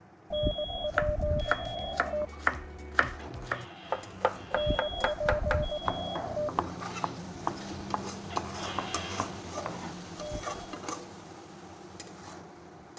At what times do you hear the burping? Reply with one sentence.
You can't hear the burping here.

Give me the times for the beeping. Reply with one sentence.
The beeping can be heard from 0.3 to 2.2 s, from 4.5 to 6.5 s and from 10.2 to 10.8 s.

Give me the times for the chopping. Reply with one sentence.
The chopping can be heard from 0.8 to 10.2 s.